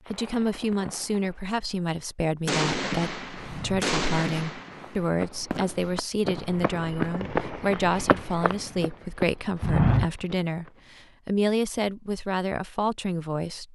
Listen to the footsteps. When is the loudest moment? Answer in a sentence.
The volume of the footsteps peaks at 10 seconds.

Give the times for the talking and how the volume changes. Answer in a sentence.
You can hear the talking from 0.1 to 13.7 s, at a steady volume.